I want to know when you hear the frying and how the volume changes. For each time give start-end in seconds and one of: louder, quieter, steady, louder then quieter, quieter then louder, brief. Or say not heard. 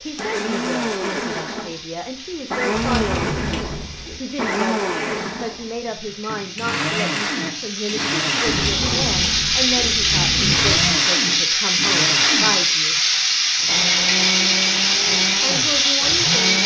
0.0-16.6 louder.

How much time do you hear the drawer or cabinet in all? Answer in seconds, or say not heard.
4 s.